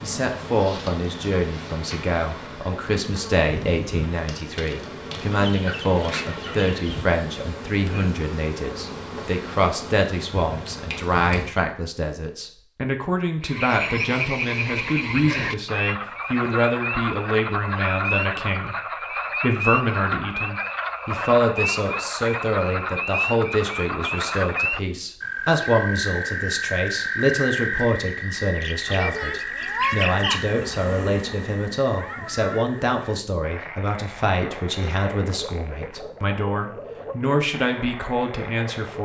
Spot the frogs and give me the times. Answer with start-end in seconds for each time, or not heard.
13.4-39.0.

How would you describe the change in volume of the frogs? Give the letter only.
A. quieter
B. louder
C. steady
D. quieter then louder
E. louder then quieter
A.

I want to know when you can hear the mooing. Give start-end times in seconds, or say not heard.
not heard.